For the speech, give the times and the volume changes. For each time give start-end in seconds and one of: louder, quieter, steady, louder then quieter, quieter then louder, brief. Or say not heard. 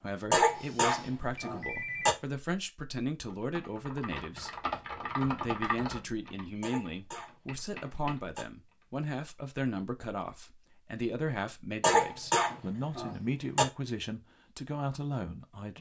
0.0-15.7 steady.